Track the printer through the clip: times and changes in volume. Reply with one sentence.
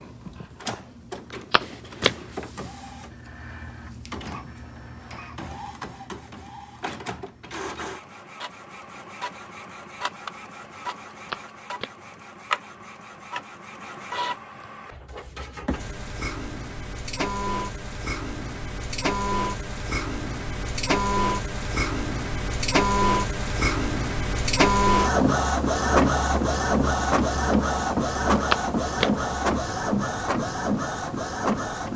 The printer can be heard from 0.0 to 31.9 s, getting louder.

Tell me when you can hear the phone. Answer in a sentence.
You can hear the phone from 1.5 to 2.1 s, from 11.3 to 11.9 s and from 28.5 to 29.1 s.